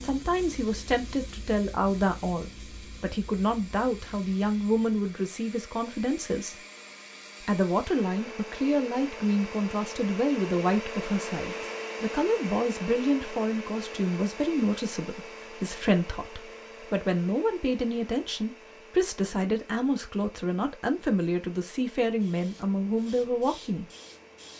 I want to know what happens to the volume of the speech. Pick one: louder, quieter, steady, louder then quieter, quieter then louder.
steady.